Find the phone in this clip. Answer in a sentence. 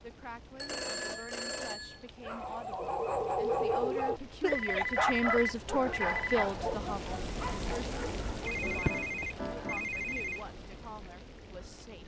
The phone can be heard from 0.6 to 2.0 s, from 4.5 to 6.5 s and from 8.4 to 10.4 s.